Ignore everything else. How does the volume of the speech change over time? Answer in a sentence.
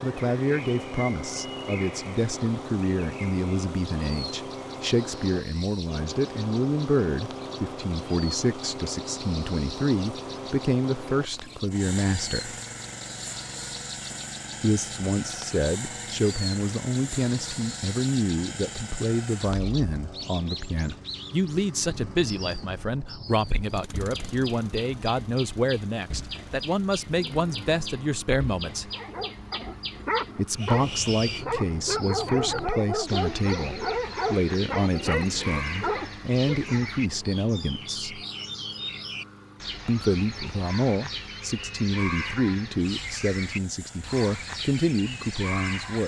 The loudness of the speech stays about the same.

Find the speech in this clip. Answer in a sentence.
The speech can be heard from 0.0 to 12.6 s, from 14.6 to 28.9 s, from 30.4 to 38.2 s and from 39.9 to 46.0 s.